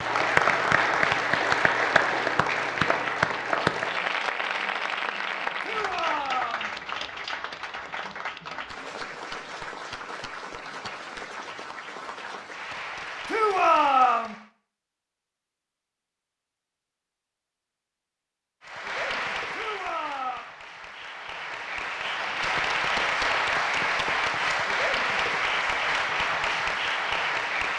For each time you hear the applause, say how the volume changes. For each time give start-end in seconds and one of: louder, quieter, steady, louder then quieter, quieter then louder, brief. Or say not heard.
0.0-14.5 quieter
18.6-27.7 louder.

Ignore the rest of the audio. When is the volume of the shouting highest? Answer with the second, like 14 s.
14 s.